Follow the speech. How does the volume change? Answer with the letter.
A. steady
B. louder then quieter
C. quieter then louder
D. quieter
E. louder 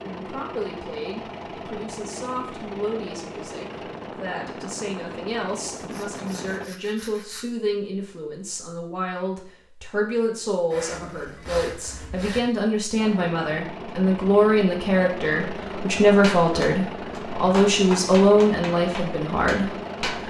E.